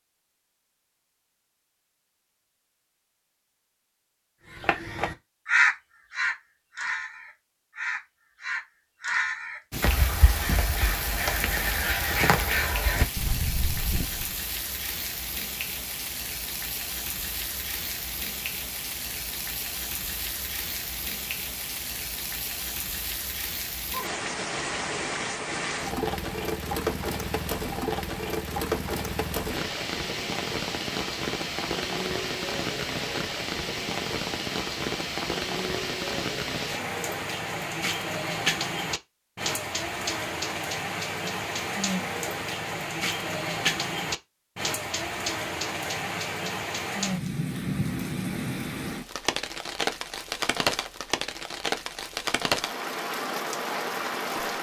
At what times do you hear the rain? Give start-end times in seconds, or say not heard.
9.7-54.5.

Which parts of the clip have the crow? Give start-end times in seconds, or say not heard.
4.5-14.2.